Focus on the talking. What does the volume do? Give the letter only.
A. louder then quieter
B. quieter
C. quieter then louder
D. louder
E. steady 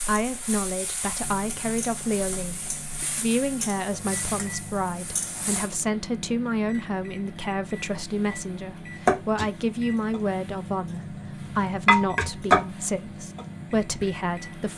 E.